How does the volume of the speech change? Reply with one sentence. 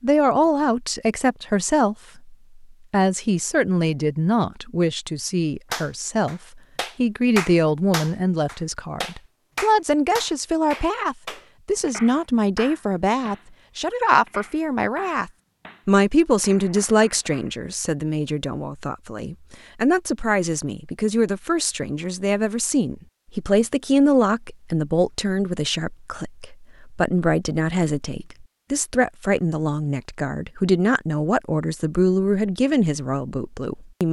The loudness of the speech stays about the same.